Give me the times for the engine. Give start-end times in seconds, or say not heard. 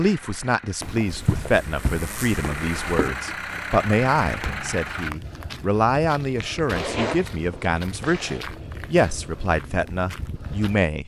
0.0-5.2.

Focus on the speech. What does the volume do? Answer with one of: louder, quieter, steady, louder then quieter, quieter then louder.
steady.